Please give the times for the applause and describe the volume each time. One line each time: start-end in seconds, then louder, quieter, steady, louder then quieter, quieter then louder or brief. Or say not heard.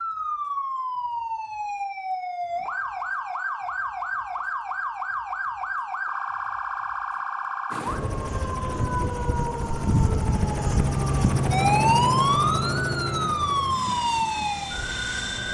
not heard.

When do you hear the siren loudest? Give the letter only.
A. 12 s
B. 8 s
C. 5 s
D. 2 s
A.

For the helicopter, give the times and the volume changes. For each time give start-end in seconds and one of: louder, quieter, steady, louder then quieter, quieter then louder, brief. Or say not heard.
7.7-15.4 louder then quieter.